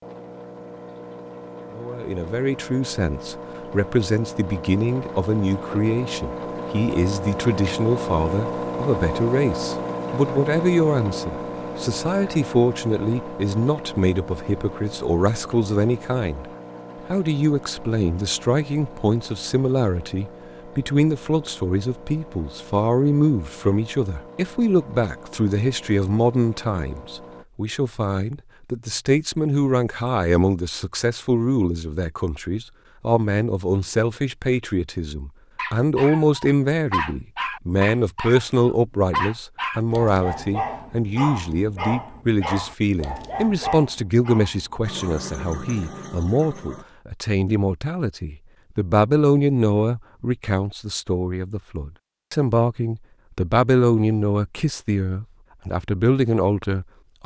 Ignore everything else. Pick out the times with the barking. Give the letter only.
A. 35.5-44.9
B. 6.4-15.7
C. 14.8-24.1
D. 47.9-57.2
A.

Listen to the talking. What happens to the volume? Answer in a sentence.
The loudness of the talking stays about the same.